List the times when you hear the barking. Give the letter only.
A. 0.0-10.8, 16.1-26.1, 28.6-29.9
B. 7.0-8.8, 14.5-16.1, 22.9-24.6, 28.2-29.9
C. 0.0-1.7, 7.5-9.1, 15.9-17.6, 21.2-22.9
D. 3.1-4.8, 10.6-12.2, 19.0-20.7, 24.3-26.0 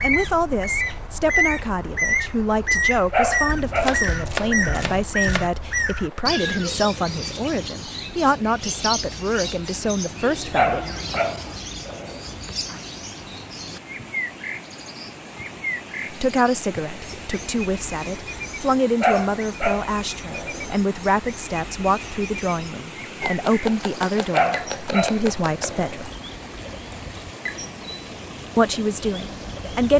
D.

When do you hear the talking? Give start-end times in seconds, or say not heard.
0.0-10.8, 16.1-26.1, 28.6-29.9.